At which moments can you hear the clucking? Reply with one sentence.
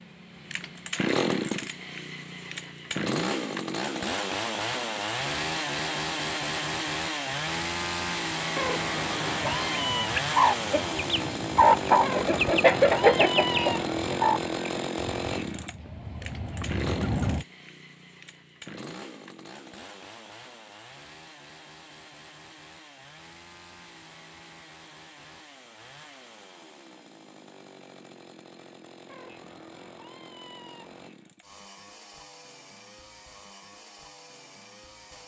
The clucking can be heard from 9.4 to 17.4 s.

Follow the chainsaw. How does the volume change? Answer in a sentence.
The loudness of the chainsaw goes down.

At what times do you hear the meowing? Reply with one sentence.
You can hear the meowing from 8.6 to 10.2 s, from 12.0 to 13.9 s and from 29.1 to 31.1 s.